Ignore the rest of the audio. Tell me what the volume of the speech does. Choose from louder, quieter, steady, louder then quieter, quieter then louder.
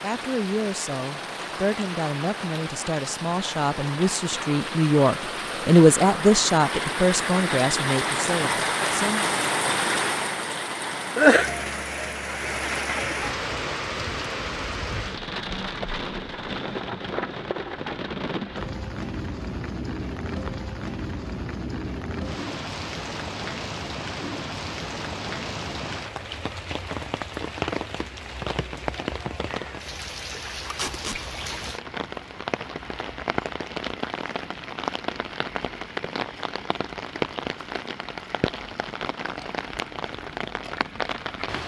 louder then quieter.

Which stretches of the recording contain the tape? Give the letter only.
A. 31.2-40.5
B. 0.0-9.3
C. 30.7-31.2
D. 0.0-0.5
C.